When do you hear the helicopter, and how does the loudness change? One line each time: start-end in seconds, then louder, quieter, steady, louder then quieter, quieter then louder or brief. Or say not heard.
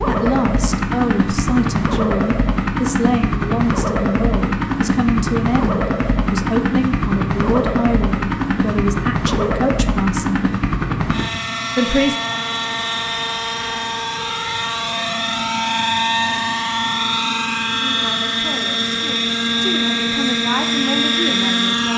0.0-21.9 steady.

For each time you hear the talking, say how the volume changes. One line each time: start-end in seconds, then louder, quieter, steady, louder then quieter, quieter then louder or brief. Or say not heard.
0.1-10.5 steady
11.8-12.2 brief
17.8-21.9 quieter then louder.